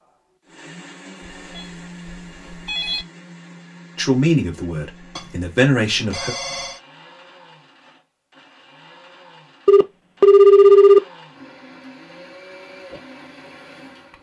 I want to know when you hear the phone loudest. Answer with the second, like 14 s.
11 s.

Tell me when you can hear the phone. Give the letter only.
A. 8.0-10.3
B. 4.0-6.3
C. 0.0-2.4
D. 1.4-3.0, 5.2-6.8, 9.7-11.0
D.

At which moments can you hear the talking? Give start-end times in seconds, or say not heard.
4.0-6.3.